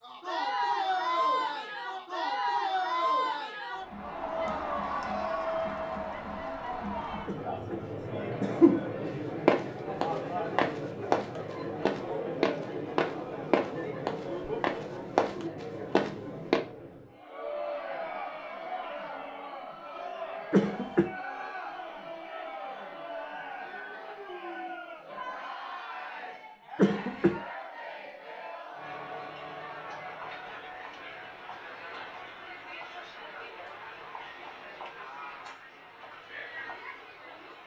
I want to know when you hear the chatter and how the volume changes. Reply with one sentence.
The chatter can be heard from 0.0 to 37.6 s, getting quieter.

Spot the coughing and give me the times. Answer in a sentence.
You can hear the coughing from 7.2 to 7.8 s, from 8.4 to 8.8 s, from 20.5 to 21.1 s and from 26.8 to 27.4 s.